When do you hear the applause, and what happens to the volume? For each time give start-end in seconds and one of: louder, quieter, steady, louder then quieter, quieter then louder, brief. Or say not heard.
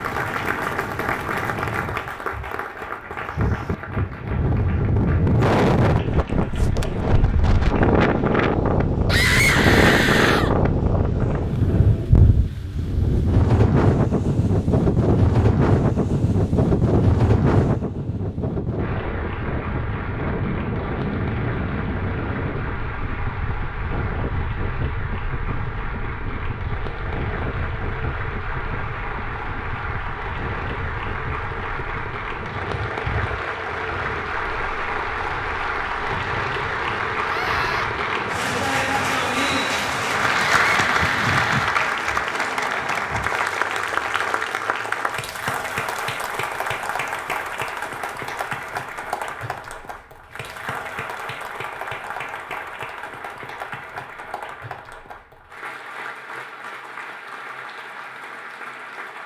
0.0-8.4 quieter
18.8-59.2 louder then quieter.